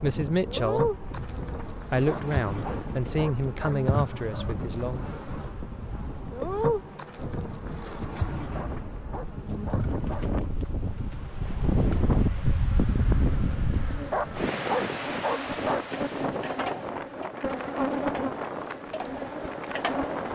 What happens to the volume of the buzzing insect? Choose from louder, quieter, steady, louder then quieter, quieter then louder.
quieter then louder.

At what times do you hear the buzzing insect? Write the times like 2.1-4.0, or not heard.
0.0-20.3.